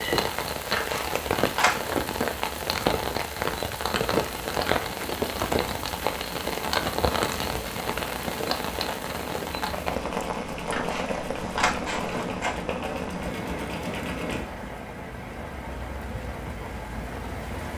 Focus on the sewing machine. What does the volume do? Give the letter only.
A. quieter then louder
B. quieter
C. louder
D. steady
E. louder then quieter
C.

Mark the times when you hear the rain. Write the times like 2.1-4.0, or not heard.
0.0-17.7.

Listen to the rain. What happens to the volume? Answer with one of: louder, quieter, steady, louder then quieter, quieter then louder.
quieter.